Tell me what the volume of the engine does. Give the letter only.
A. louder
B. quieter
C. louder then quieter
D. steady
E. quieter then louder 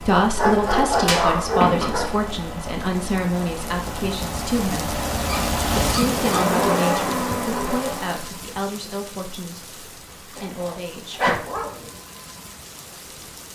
A.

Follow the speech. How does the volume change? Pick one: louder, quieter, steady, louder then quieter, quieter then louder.
quieter.